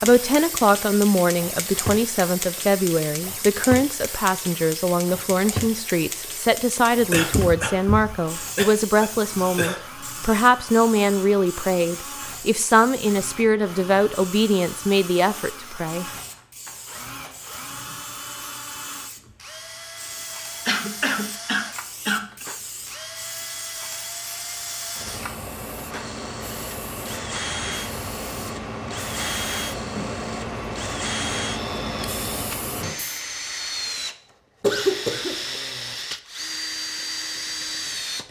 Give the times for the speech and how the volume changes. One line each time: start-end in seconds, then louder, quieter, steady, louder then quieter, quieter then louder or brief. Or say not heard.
0.0-16.1 steady.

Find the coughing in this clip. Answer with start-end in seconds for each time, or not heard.
7.1-9.8, 20.6-22.4, 34.6-35.6.